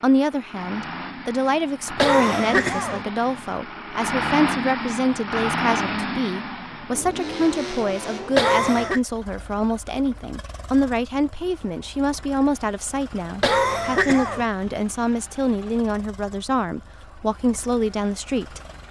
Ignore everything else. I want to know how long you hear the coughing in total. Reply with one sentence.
The coughing can be heard for 3 seconds in total.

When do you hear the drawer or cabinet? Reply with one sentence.
You can't hear the drawer or cabinet here.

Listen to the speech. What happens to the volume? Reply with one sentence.
The loudness of the speech stays about the same.